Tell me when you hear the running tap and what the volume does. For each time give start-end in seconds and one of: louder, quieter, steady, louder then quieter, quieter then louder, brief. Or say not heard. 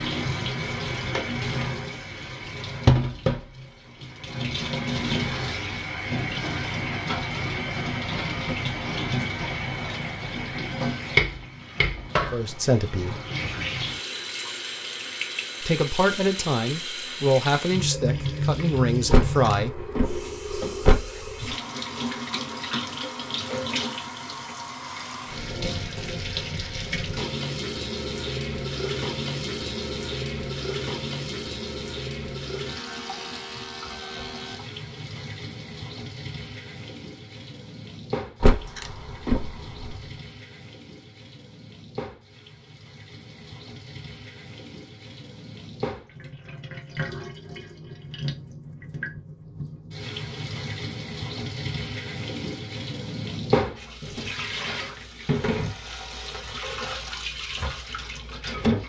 0.0-58.8 quieter then louder.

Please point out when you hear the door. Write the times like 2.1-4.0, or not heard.
19.1-21.6, 38.4-40.0.